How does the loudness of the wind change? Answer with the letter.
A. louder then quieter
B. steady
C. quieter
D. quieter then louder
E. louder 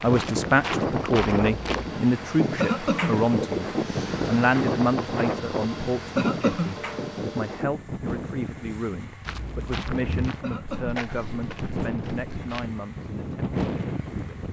D.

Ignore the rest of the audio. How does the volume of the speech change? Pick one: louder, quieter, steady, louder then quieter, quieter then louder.
quieter.